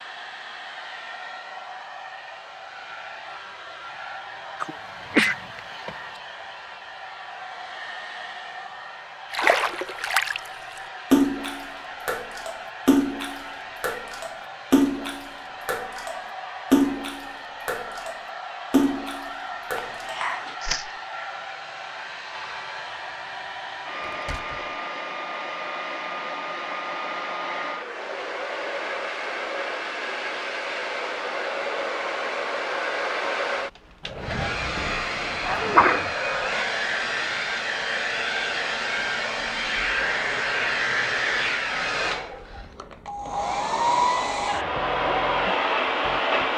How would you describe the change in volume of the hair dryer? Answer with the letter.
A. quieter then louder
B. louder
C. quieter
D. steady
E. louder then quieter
B.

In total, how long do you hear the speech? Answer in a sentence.
You can't hear the speech here.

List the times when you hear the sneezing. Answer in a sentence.
The sneezing can be heard from 4.6 to 5.6 s, from 19.8 to 20.6 s and from 35.4 to 36.1 s.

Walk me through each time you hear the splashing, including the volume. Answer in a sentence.
The splashing can be heard briefly from 9.3 to 10.4 s; and from 11.1 to 20.9 s, getting quieter then louder.